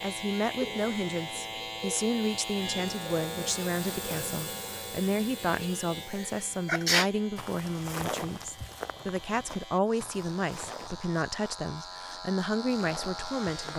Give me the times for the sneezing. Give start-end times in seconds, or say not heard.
6.2-7.1.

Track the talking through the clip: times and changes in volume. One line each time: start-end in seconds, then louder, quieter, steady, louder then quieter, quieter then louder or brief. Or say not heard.
0.0-13.7 steady.